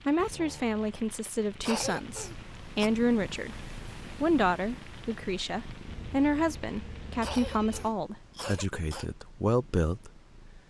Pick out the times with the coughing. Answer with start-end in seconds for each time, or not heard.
1.6-2.9, 7.2-9.1.